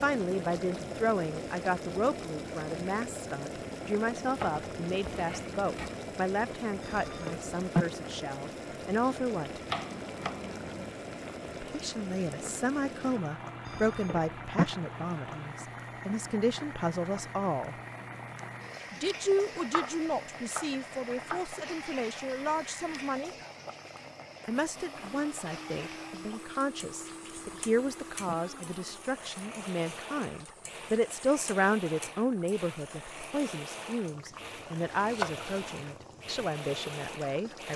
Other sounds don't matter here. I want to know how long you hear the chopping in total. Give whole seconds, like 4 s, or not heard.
5 s.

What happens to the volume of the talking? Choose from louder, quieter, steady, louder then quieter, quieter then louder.
steady.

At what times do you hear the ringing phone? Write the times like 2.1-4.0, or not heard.
6.8-7.8, 13.7-14.7, 27.4-28.4.